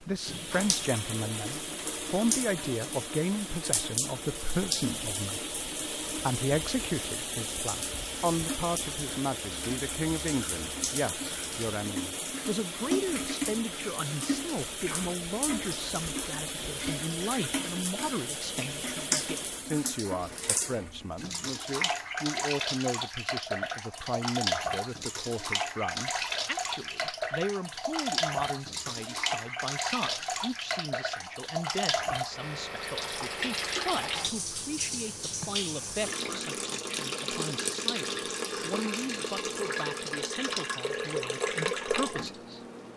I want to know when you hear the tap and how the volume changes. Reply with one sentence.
The tap can be heard from 0.0 to 42.9 s, at a steady volume.